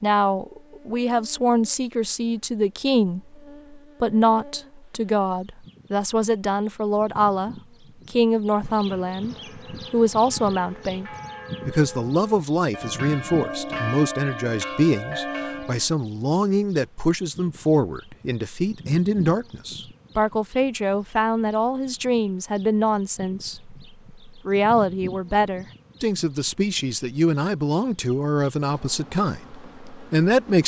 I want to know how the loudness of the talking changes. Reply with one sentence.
The loudness of the talking stays about the same.